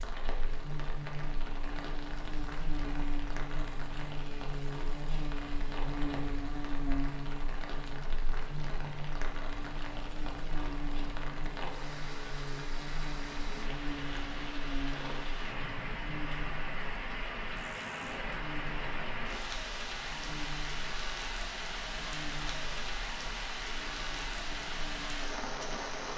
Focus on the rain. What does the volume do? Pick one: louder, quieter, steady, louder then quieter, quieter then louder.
louder.